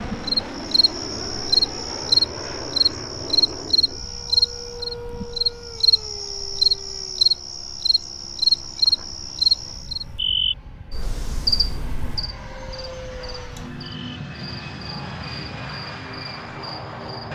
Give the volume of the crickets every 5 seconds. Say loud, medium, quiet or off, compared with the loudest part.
loud, loud, medium, quiet.